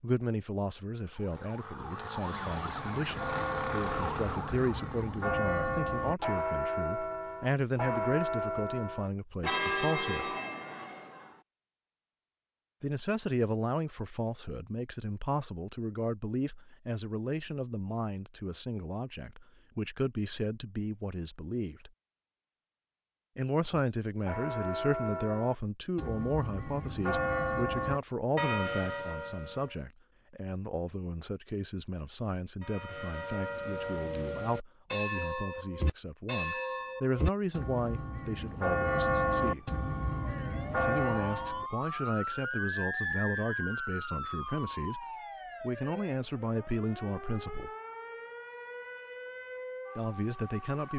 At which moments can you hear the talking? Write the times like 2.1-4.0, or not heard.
0.0-10.3, 12.8-21.9, 23.4-39.6, 40.8-47.7, 50.0-50.9.